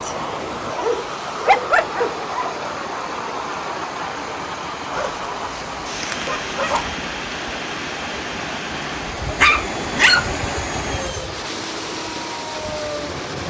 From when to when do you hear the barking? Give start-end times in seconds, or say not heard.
0.8-2.6, 4.9-6.9, 9.3-10.3.